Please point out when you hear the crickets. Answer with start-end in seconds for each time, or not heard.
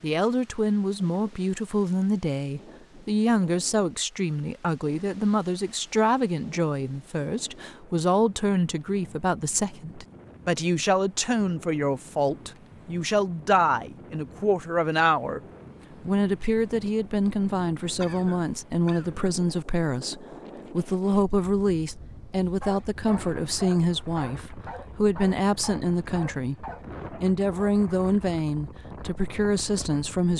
not heard.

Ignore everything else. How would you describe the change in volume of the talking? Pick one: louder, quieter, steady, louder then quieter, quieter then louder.
steady.